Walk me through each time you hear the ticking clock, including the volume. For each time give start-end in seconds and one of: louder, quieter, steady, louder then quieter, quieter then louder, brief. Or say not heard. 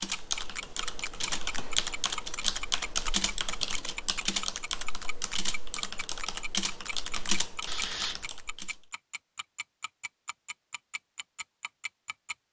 0.1-12.4 quieter.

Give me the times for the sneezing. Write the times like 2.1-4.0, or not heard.
7.7-8.3.